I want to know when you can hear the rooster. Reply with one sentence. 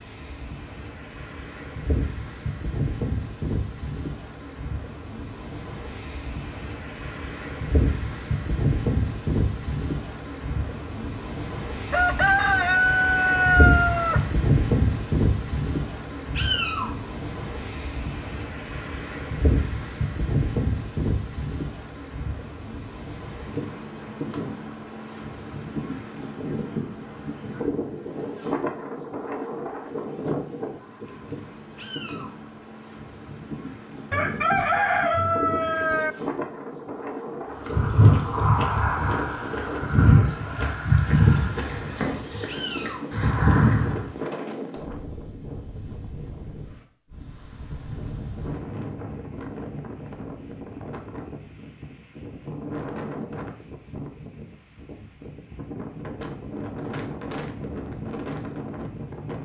The rooster can be heard from 11.9 to 14.2 s and from 34.1 to 36.1 s.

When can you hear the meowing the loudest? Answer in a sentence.
The loudest moment of the meowing is at 17 seconds.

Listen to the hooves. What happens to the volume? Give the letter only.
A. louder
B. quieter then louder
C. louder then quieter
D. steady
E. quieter
B.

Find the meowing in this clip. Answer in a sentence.
The meowing can be heard from 16.4 to 17.0 s, from 31.8 to 32.4 s and from 42.5 to 43.1 s.